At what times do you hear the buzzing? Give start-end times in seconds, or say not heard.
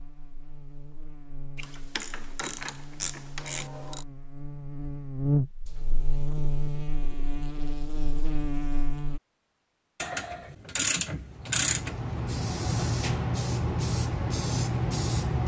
0.0-9.2.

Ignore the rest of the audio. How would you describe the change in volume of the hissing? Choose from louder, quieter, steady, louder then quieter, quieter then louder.
louder.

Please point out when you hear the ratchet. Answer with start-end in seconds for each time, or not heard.
1.6-4.0, 10.0-11.9.